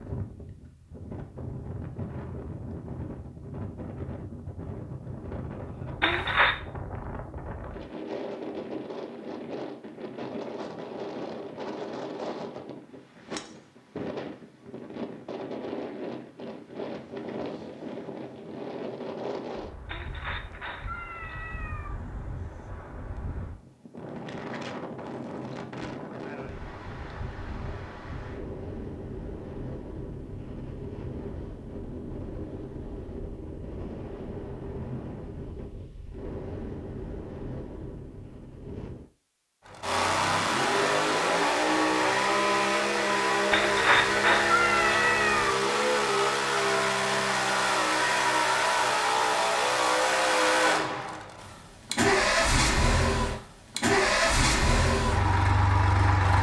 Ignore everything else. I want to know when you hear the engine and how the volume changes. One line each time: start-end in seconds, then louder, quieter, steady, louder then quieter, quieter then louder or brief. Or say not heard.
39.6-56.3 steady.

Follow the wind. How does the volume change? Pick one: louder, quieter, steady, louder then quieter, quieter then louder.
steady.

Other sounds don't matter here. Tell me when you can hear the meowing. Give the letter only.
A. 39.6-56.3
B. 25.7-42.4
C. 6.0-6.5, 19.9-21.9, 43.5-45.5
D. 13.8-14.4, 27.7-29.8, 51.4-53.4
C.